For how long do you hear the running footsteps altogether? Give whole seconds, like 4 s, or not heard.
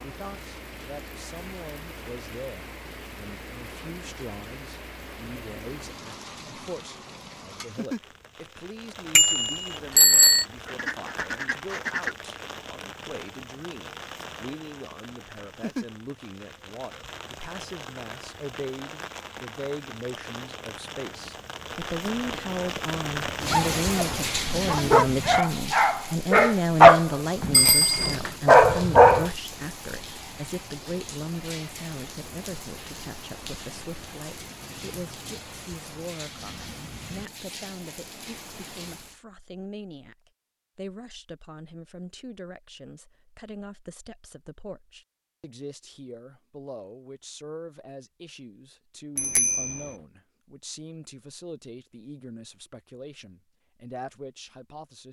not heard.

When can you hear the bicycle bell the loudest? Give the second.
10 s.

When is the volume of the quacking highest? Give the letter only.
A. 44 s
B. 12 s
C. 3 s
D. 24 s
B.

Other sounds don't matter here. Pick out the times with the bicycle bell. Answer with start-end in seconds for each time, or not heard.
9.2-10.4, 27.5-28.1, 49.1-49.8.